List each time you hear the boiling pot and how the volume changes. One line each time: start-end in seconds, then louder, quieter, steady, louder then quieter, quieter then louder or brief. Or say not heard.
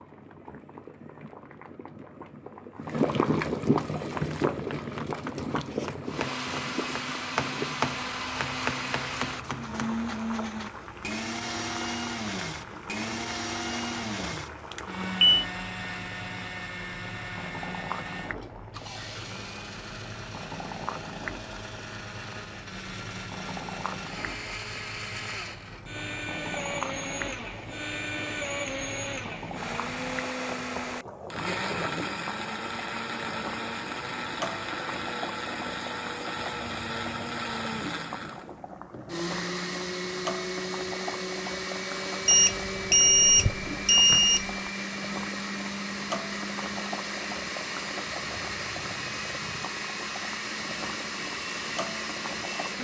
0.0-52.7 quieter.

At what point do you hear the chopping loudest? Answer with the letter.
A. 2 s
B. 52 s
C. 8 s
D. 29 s
C.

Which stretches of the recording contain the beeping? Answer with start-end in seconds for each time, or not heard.
14.7-15.4, 42.2-44.5.